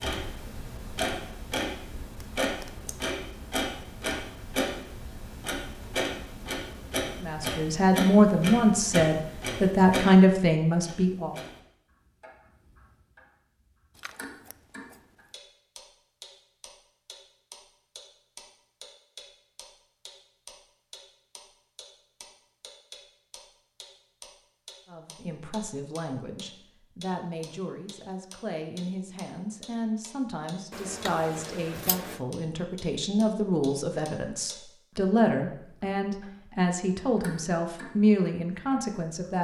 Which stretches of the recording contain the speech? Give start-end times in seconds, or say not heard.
7.2-11.3, 24.9-39.3.